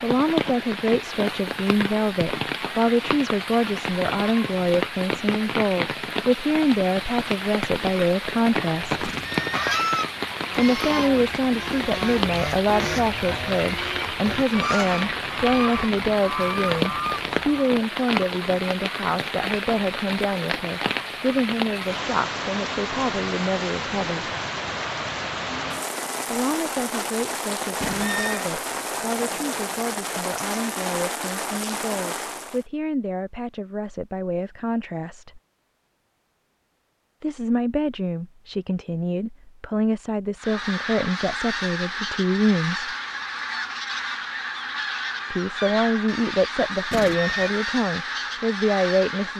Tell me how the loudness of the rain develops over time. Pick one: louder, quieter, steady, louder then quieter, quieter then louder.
steady.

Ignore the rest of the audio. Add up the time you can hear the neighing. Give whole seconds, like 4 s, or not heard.
2 s.